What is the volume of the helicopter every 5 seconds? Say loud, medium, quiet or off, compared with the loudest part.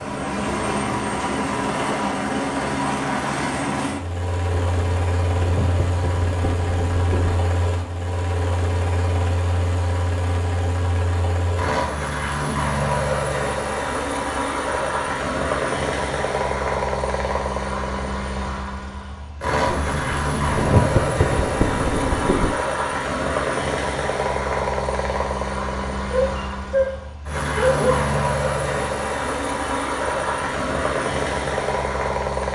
loud, medium, loud, loud, loud, loud, loud.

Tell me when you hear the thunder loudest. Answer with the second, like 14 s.
21 s.